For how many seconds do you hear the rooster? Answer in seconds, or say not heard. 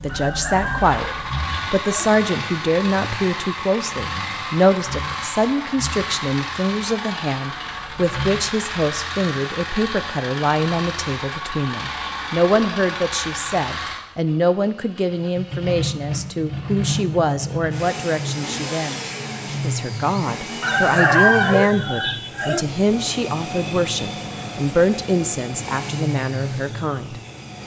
4 s.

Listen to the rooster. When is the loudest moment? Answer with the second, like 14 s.
21 s.